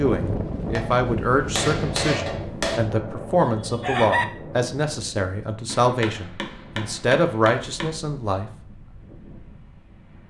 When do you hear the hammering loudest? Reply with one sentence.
The volume of the hammering peaks at 2 seconds.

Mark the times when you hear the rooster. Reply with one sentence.
You can hear the rooster from 3.4 to 4.2 s.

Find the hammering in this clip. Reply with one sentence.
The hammering can be heard from 0.7 to 2.8 s and from 5.7 to 8.0 s.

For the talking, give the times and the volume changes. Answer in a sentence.
You can hear the talking from 0.0 to 8.5 s, at a steady volume.